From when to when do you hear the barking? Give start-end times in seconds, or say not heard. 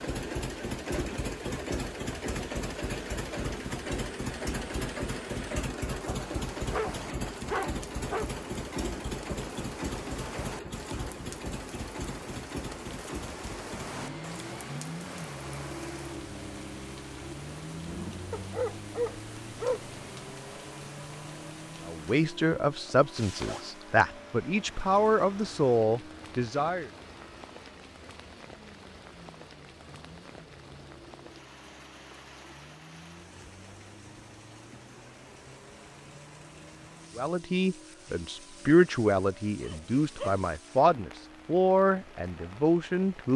6.0-8.3, 18.3-19.9, 39.6-40.4.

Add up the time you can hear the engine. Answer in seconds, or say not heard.
43 s.